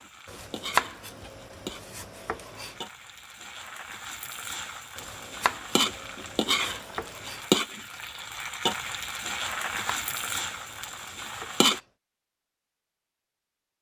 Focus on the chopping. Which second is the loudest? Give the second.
1 s.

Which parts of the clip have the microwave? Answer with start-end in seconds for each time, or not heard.
not heard.